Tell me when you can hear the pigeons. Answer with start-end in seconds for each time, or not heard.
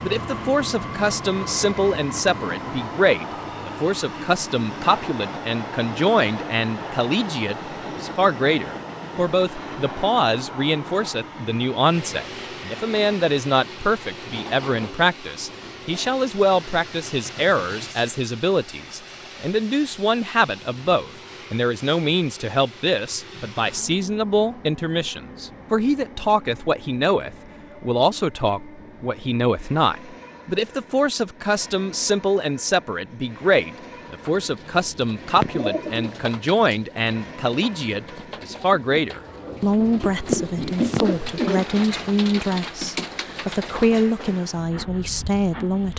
33.8-44.0.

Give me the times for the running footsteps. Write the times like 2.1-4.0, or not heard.
not heard.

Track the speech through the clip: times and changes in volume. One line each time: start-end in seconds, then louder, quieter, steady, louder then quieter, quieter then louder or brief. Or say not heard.
0.0-45.9 steady.